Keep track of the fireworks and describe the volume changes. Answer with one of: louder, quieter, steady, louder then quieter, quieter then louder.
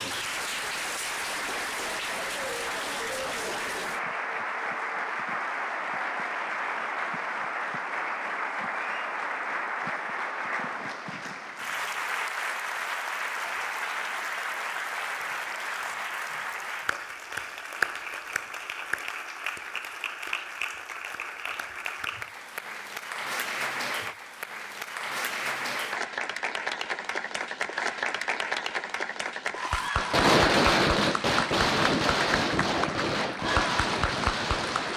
quieter.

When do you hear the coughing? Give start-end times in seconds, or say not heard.
not heard.